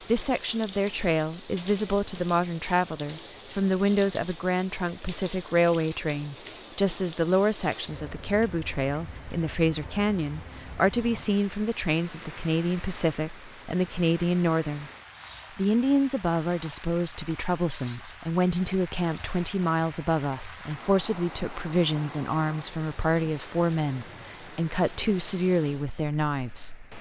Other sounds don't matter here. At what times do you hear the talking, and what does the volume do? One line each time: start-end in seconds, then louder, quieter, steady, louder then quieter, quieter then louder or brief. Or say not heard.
0.1-14.9 steady
15.6-26.9 steady.